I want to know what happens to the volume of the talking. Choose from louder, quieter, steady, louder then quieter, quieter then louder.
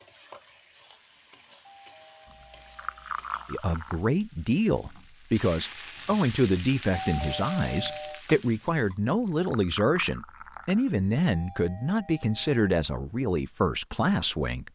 steady.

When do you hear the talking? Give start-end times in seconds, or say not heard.
3.5-14.6.